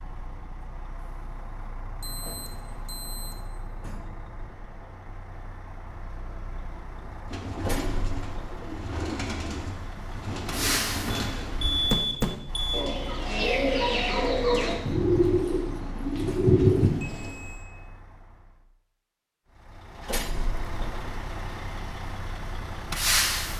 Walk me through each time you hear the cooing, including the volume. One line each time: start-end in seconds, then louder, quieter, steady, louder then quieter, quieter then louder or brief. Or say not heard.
7.2-17.4 louder.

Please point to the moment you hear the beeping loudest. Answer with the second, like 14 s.
12 s.